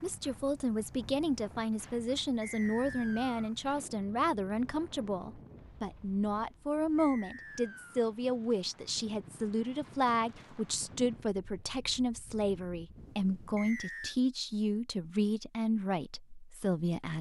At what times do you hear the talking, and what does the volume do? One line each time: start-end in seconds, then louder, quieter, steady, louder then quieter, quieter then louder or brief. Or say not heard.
0.0-17.1 steady.